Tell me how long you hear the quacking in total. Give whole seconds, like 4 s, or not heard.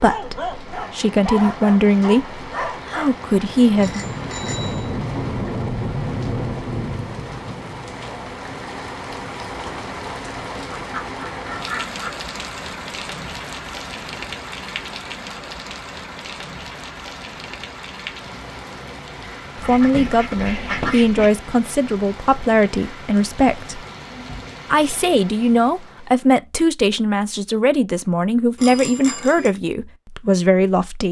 3 s.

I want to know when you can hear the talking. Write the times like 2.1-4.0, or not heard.
0.0-4.0, 19.6-23.8, 24.7-31.0.